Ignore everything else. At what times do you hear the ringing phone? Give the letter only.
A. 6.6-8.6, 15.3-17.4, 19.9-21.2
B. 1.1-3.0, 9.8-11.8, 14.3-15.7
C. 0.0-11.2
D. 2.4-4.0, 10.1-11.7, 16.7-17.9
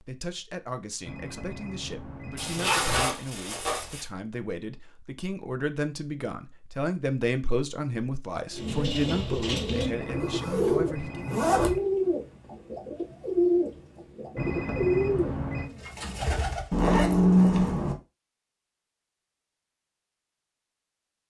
B.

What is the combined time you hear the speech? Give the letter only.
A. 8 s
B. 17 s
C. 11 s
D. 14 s
C.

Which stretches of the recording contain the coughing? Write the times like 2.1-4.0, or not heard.
not heard.